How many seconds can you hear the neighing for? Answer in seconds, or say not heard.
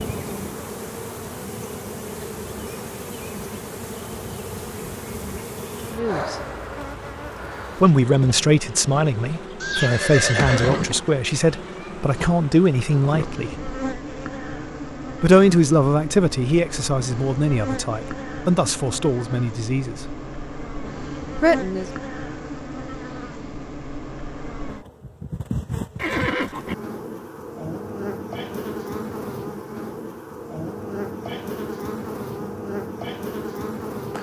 2 s.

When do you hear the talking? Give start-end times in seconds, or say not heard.
5.9-6.3, 7.8-13.7, 15.2-19.9, 21.4-21.9.